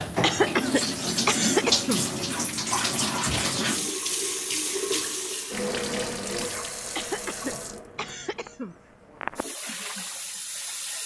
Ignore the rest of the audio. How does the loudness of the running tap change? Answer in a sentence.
The volume of the running tap goes down.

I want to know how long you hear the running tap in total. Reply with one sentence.
The running tap can be heard for 11 seconds in total.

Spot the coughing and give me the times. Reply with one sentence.
You can hear the coughing from 0.2 to 2.0 s and from 7.0 to 8.8 s.